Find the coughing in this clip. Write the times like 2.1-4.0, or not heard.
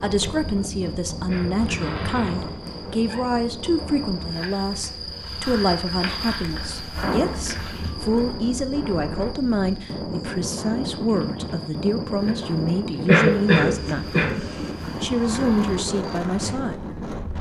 1.2-1.7, 13.1-14.3.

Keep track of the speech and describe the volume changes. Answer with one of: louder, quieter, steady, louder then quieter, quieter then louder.
steady.